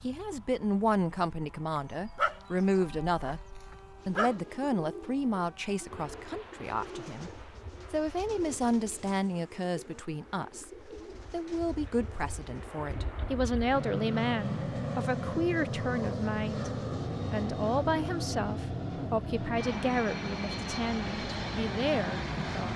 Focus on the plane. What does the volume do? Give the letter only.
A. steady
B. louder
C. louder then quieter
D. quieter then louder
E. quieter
B.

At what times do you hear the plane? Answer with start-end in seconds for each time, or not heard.
0.0-22.7.